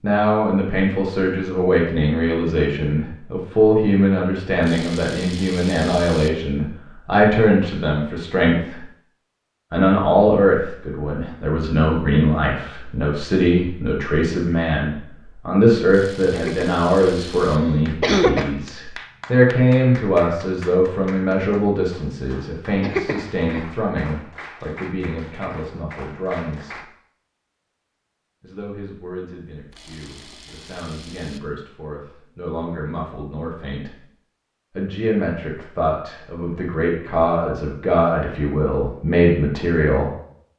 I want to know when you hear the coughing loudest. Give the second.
18 s.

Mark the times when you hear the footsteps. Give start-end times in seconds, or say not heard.
not heard.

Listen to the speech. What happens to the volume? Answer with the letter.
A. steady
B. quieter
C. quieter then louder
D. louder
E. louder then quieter
C.